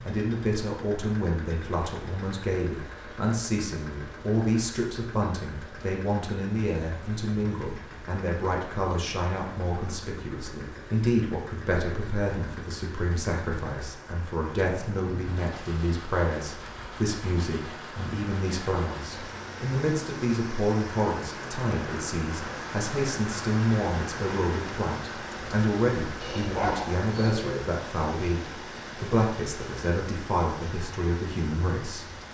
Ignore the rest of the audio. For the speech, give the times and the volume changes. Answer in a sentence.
You can hear the speech from 0.0 to 32.1 s, at a steady volume.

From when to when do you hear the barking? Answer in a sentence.
You can hear the barking from 26.2 to 27.6 s.